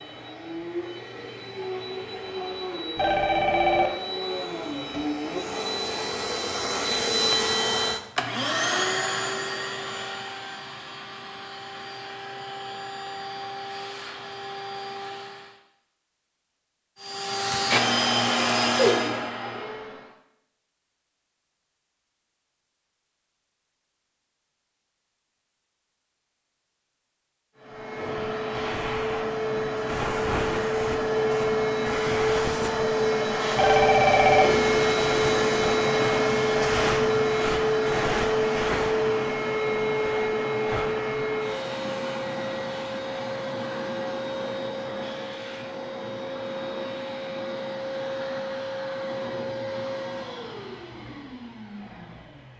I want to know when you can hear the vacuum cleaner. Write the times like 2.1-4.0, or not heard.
0.0-15.6, 17.0-20.1, 27.6-52.5.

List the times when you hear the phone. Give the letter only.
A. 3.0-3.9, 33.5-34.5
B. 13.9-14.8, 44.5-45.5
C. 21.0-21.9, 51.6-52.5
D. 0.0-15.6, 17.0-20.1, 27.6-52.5
A.